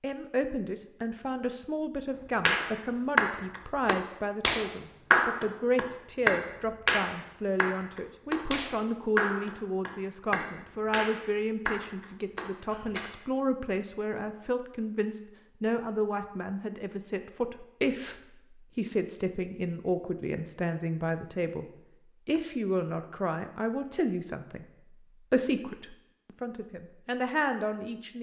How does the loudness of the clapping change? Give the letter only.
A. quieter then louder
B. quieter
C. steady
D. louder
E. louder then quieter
B.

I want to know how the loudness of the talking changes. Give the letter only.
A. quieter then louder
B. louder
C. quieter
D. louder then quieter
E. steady
E.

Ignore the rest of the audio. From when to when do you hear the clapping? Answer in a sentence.
You can hear the clapping from 2.5 to 13.0 s.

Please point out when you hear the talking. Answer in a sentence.
The talking can be heard from 0.0 to 21.6 s and from 22.2 to 28.1 s.